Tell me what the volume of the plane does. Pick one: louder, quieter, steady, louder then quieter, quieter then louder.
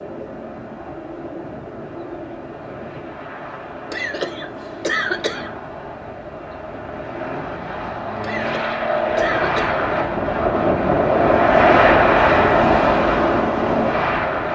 louder.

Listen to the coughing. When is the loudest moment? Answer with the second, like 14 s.
5 s.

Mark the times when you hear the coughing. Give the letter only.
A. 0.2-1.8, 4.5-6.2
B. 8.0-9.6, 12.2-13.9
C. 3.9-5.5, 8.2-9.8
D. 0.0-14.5
C.